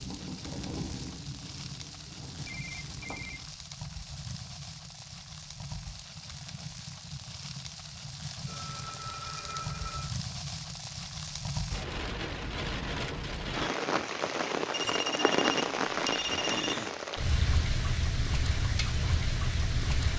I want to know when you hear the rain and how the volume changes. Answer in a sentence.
The rain can be heard from 0.0 to 20.1 s, getting louder.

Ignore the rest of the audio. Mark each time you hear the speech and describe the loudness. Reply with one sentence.
You can't hear the speech here.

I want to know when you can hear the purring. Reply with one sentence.
You can hear the purring from 0.0 to 3.5 s.